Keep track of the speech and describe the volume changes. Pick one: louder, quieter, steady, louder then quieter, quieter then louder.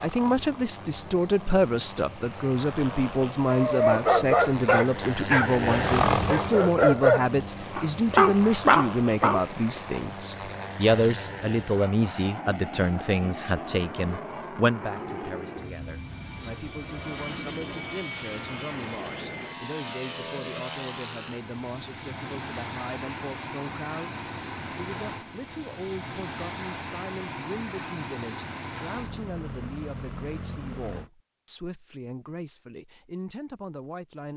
quieter.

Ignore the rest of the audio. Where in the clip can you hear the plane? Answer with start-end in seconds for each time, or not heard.
0.0-31.1.